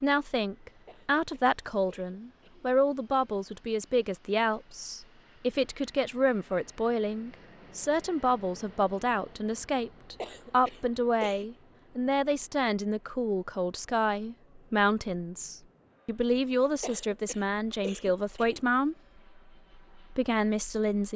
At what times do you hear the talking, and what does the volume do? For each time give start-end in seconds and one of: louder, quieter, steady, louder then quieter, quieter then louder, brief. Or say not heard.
0.0-18.9 steady
19.9-21.1 brief.